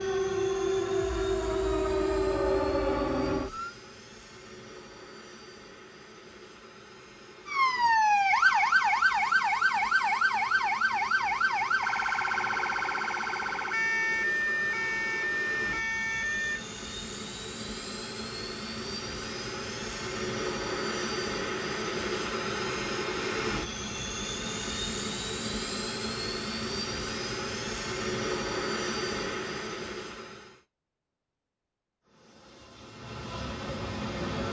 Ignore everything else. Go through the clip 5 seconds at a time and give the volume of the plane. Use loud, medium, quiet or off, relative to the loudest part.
quiet, quiet, medium, medium, loud, loud, medium.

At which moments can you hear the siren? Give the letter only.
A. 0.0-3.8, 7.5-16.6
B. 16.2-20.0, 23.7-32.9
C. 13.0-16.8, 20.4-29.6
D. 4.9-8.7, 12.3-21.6
A.